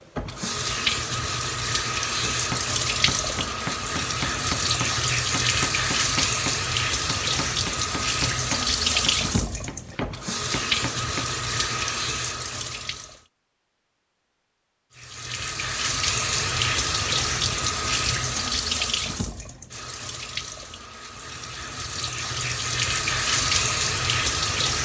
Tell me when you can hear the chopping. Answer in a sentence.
The chopping can be heard from 2.2 to 11.3 s.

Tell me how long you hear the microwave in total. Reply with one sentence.
You can't hear the microwave here.